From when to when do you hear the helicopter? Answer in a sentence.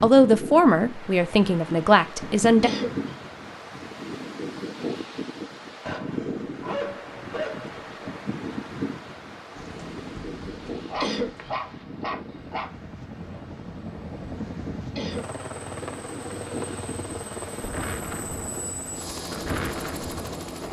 The helicopter can be heard from 9.4 to 20.6 s.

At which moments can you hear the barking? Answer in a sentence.
You can hear the barking from 5.8 to 8.2 s and from 10.8 to 12.7 s.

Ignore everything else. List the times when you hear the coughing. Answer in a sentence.
The coughing can be heard from 2.6 to 3.2 s, from 11.0 to 11.6 s and from 14.9 to 15.4 s.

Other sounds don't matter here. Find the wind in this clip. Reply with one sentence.
You can hear the wind from 0.0 to 20.6 s.